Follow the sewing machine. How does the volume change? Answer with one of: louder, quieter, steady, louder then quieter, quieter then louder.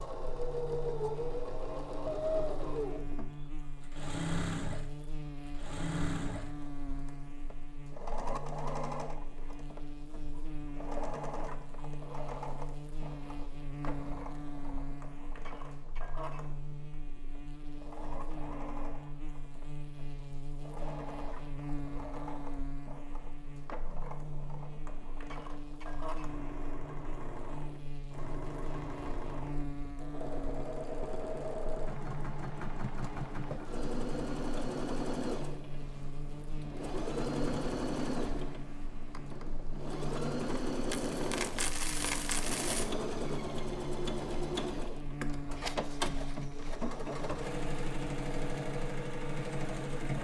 quieter then louder.